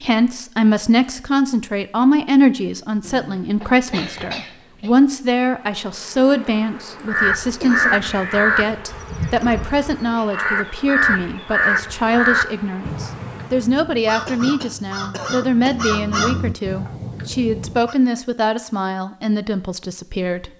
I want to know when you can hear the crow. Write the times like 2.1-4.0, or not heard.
7.0-17.9.